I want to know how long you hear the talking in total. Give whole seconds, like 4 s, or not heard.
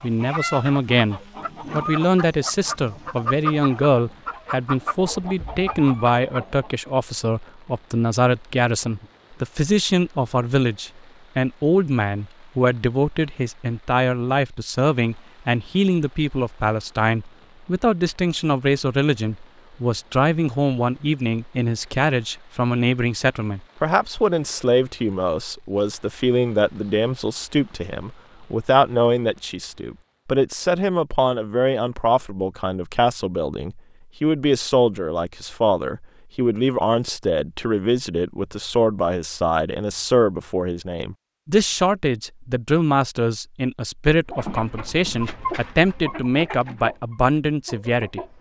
48 s.